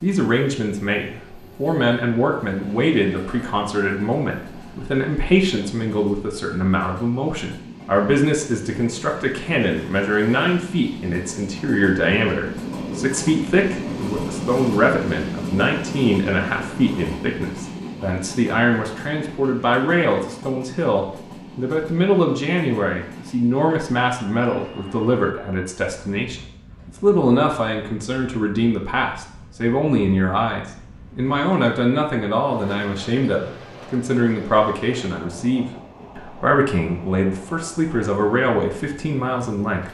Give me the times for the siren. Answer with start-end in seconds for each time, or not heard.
not heard.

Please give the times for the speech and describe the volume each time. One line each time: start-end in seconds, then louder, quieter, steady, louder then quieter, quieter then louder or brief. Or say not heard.
0.0-39.8 steady.